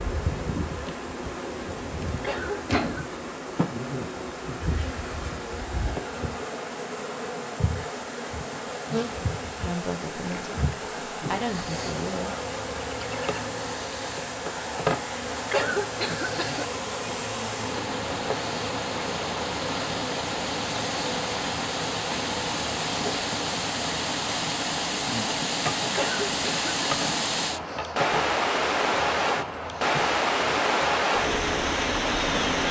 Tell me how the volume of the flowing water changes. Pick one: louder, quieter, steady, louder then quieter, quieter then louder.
louder.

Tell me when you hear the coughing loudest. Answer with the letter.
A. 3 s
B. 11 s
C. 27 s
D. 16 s
D.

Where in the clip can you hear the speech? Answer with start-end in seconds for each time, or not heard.
9.6-12.3.